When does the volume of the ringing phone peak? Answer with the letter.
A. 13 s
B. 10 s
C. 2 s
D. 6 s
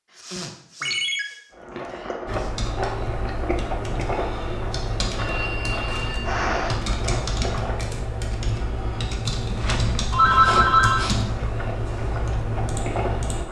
B.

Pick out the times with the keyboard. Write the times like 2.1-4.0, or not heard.
2.2-13.4.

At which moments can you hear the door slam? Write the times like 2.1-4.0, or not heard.
not heard.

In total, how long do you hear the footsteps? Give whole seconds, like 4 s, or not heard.
not heard.